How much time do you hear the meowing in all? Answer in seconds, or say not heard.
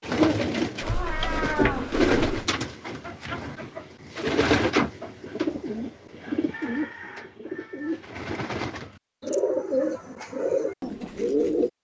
2 s.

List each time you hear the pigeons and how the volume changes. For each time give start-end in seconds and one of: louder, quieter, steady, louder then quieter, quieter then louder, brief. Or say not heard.
0.0-11.7 quieter then louder.